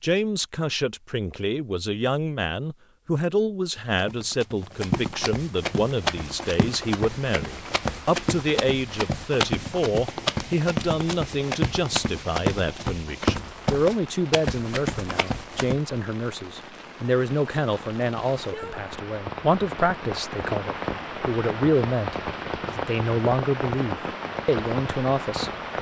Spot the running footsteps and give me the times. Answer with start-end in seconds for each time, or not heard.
3.9-15.8.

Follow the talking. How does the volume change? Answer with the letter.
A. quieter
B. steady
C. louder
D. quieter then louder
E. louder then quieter
B.